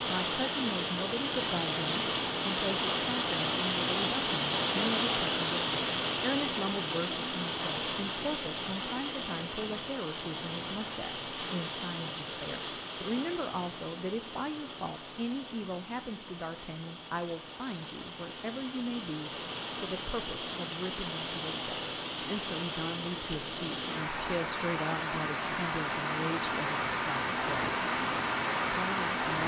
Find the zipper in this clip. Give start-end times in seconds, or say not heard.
not heard.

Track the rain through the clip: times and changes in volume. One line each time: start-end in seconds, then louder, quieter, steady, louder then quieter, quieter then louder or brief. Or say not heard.
0.0-29.4 quieter then louder.